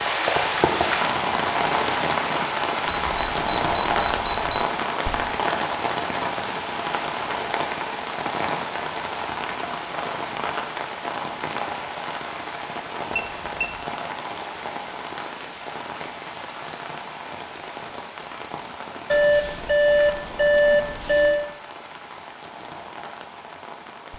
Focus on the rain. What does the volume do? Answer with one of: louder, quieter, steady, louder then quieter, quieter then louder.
quieter.